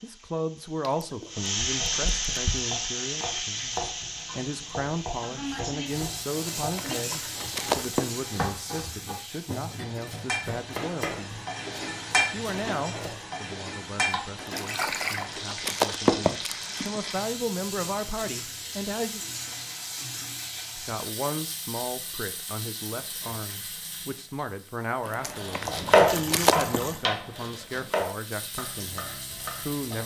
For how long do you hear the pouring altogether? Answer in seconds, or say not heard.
4 s.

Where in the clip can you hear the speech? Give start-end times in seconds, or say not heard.
0.0-11.4, 12.3-19.2, 20.8-30.0.